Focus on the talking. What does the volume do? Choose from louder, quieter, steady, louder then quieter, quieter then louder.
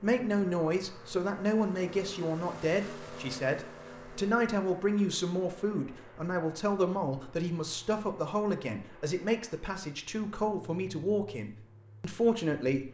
steady.